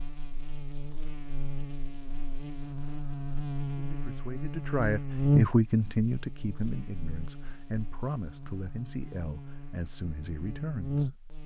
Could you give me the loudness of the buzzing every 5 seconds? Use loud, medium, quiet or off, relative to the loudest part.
medium, loud, loud.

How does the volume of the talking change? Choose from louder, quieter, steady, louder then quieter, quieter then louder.
quieter.